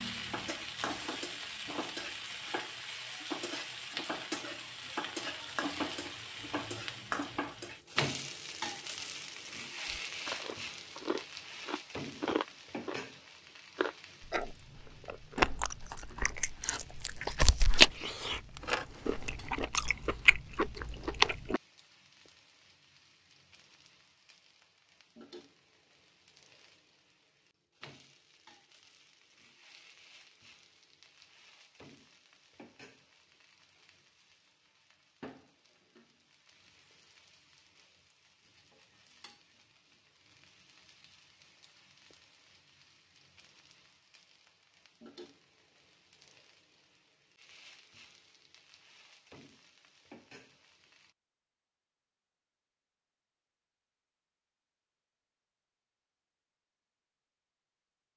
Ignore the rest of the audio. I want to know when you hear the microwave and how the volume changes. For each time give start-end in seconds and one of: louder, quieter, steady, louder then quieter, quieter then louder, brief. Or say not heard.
not heard.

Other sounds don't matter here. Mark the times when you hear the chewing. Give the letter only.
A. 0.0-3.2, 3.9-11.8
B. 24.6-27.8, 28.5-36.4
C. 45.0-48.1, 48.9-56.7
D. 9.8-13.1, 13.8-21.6
D.